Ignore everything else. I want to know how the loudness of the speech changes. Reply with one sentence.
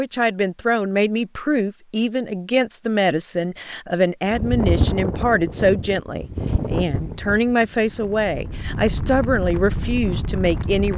The volume of the speech stays about the same.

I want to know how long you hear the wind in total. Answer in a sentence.
The wind can be heard for 7 seconds in total.